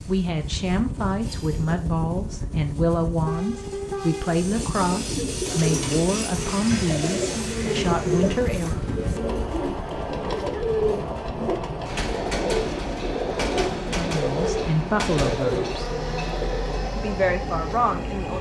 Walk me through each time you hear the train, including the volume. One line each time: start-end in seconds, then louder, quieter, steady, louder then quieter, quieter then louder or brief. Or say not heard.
0.0-18.3 steady.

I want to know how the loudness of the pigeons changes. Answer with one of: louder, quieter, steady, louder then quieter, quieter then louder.
steady.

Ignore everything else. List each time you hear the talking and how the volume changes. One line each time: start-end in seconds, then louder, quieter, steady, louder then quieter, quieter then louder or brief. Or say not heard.
0.1-8.9 steady
13.9-15.9 brief
16.9-18.3 brief.